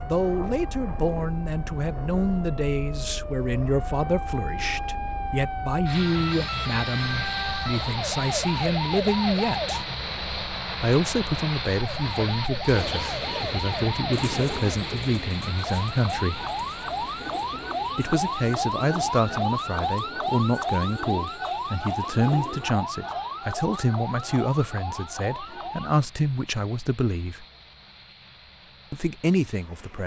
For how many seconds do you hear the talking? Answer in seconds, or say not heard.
26 s.